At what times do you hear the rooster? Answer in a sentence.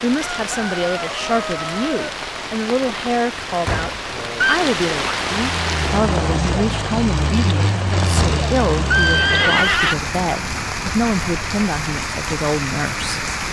You can hear the rooster from 0.1 to 2.1 s.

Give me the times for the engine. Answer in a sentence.
You can hear the engine from 5.4 to 9.3 s.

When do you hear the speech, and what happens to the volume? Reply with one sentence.
You can hear the speech from 0.0 to 13.2 s, at a steady volume.